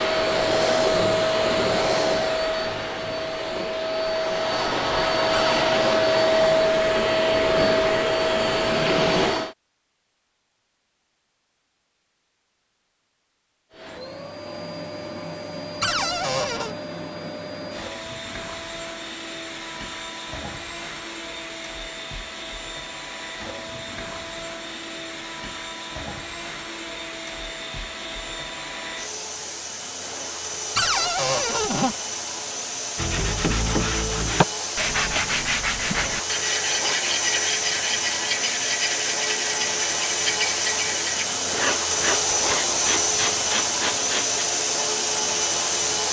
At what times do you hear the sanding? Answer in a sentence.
You can hear the sanding from 33.0 to 44.5 s.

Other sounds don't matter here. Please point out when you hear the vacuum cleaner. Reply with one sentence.
You can hear the vacuum cleaner from 0.0 to 9.6 s and from 13.7 to 46.0 s.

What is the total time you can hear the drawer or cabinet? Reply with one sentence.
You can hear the drawer or cabinet for 3 seconds altogether.